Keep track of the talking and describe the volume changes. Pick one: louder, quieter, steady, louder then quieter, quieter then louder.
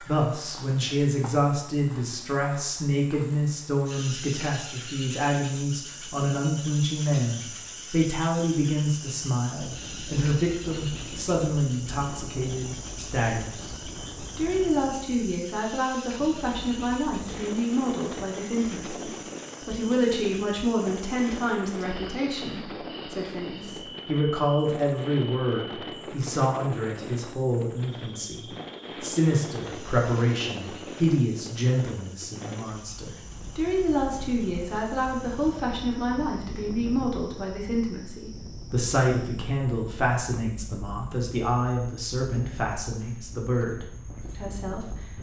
steady.